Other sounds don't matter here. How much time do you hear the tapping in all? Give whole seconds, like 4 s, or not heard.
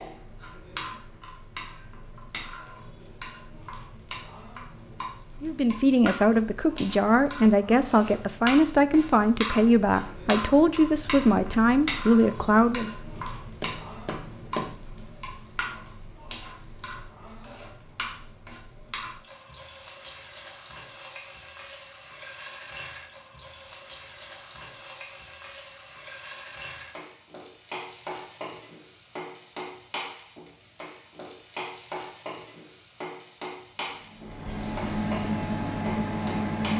2 s.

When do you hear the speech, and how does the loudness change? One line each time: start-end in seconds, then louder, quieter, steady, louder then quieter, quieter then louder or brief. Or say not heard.
5.4-12.9 steady.